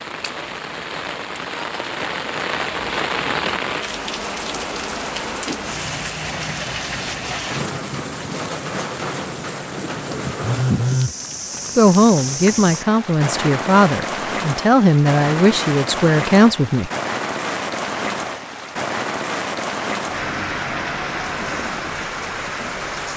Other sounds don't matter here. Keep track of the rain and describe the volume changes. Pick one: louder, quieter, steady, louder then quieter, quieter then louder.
steady.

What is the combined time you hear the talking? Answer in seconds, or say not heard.
5 s.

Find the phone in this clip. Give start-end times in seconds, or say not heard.
10.4-11.2.